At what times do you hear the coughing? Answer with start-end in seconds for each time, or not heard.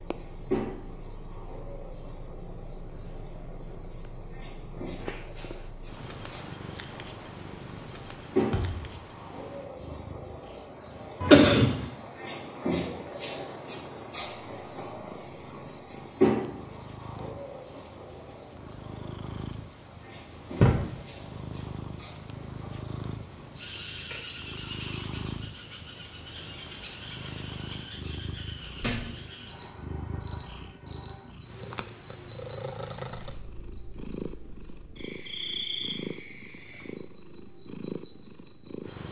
11.2-11.8.